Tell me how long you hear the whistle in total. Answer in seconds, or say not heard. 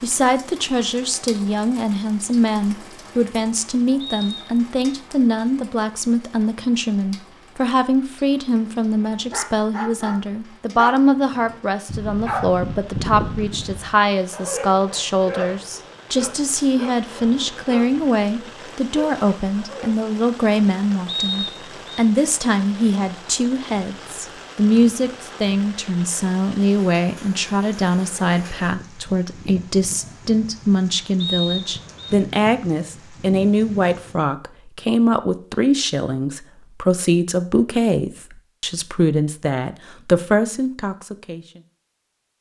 3 s.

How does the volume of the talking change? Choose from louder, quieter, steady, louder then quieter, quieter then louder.
steady.